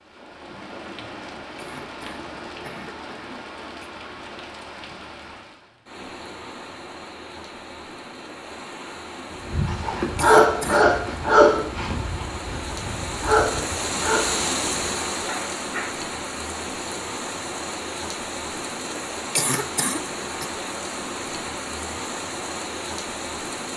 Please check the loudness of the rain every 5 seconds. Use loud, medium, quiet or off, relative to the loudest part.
medium, medium, loud, loud, loud.